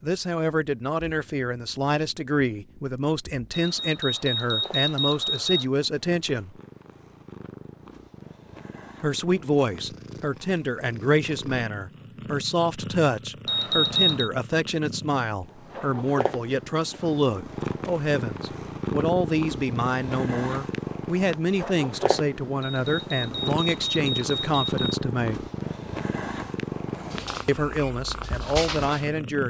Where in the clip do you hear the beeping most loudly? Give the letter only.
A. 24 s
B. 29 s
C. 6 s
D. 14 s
D.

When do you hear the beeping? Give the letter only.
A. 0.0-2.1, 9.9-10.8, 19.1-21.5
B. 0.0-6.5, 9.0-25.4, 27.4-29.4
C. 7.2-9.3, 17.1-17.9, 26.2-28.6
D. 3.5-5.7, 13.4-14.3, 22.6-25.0
D.